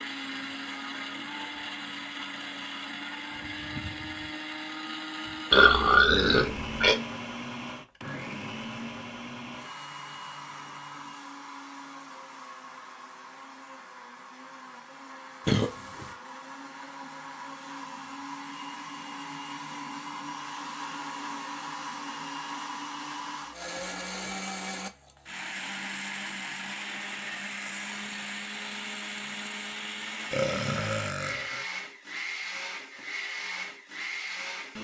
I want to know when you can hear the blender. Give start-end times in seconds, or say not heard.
0.0-34.7.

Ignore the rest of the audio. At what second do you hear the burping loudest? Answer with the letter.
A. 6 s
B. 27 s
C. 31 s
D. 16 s
A.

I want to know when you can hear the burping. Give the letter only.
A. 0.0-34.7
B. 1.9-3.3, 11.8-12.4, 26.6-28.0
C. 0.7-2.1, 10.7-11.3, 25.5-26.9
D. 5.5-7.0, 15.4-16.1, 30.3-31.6
D.